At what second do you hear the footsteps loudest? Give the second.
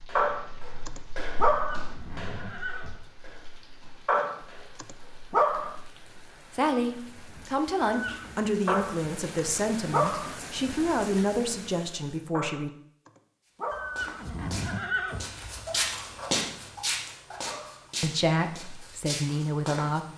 16 s.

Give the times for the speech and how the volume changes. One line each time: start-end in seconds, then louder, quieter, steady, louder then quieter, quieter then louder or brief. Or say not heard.
6.5-12.7 steady
18.0-20.1 brief.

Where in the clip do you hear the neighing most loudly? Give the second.
15 s.